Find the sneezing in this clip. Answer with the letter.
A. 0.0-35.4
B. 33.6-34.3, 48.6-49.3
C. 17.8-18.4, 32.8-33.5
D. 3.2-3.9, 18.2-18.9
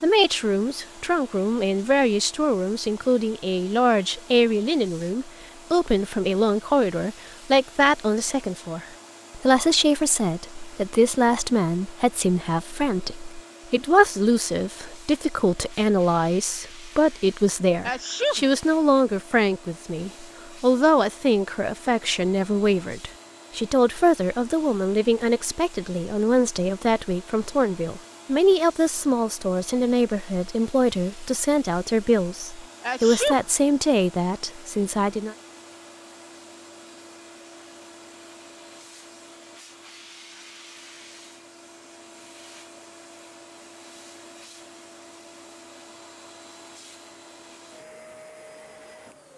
C.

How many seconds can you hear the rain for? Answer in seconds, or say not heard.
not heard.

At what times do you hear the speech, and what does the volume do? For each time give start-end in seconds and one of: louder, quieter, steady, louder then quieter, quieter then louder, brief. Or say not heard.
0.0-35.4 steady.